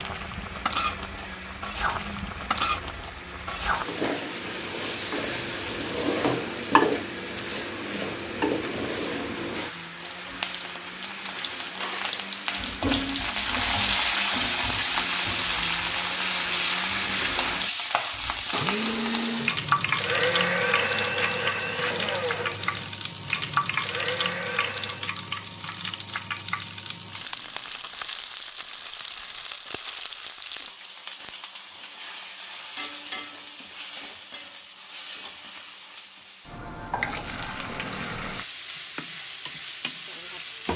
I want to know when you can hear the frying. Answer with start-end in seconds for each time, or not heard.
0.0-40.7.